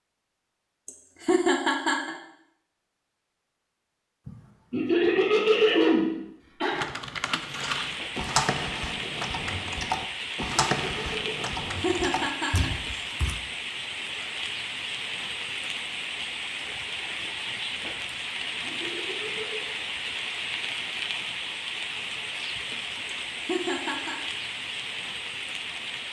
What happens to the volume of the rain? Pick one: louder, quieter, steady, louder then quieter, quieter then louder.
steady.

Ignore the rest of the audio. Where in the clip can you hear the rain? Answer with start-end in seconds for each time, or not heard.
7.3-26.0.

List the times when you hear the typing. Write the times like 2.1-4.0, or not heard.
6.7-13.4.